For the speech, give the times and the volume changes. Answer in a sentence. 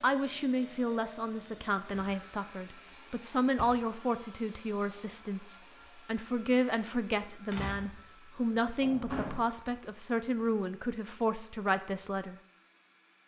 You can hear the speech from 0.0 to 12.3 s, at a steady volume.